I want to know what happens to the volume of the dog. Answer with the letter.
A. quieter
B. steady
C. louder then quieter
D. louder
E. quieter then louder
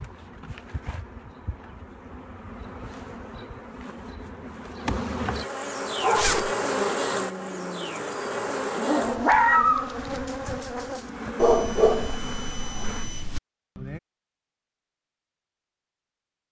C.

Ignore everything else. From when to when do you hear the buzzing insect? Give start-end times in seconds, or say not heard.
0.0-13.1.